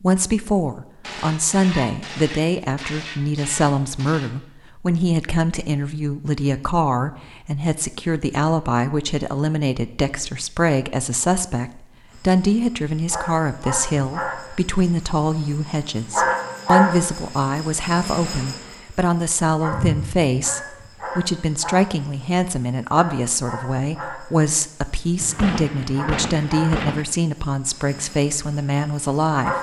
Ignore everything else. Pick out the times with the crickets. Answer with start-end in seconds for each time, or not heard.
12.1-29.5.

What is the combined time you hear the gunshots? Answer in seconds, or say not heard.
5 s.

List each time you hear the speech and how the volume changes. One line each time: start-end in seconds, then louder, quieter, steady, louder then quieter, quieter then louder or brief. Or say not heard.
0.0-29.5 steady.